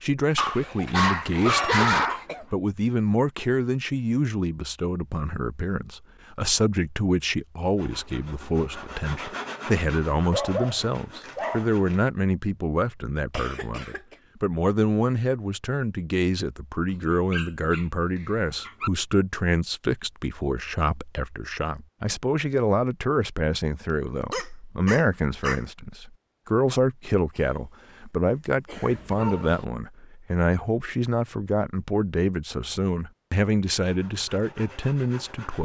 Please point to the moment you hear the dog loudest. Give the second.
2 s.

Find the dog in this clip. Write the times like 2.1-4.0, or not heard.
0.3-2.2, 10.3-11.7, 17.3-18.9, 24.3-25.6, 28.9-29.6.